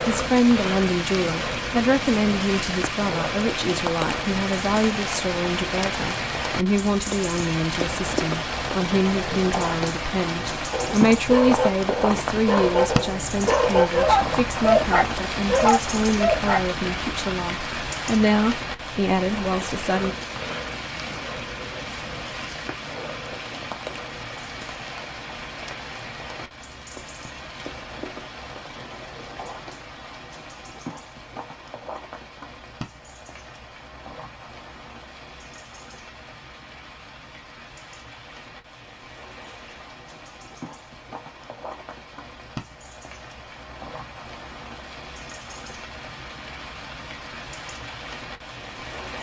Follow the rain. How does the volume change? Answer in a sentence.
The loudness of the rain goes down.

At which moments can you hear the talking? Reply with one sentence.
The talking can be heard from 0.1 to 20.1 s.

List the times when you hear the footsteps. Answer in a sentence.
The footsteps can't be heard in this clip.